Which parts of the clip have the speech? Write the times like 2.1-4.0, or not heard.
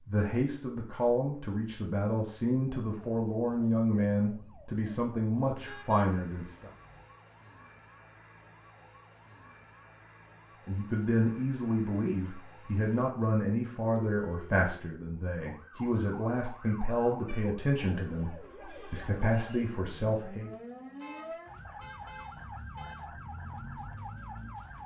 0.1-6.7, 10.7-20.5.